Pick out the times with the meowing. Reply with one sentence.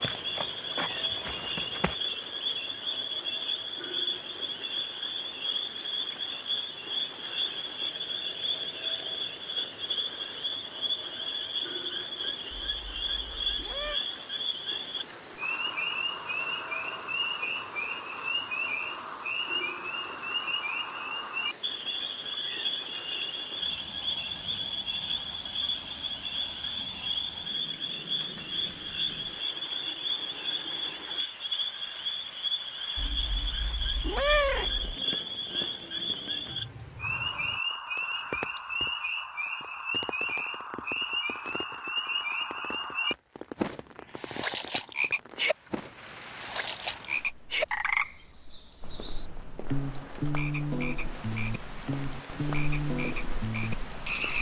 You can hear the meowing from 12.5 to 14.0 s and from 33.0 to 35.0 s.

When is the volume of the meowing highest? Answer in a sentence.
The loudest moment of the meowing is at 34 seconds.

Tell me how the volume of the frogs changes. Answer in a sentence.
The volume of the frogs stays about the same.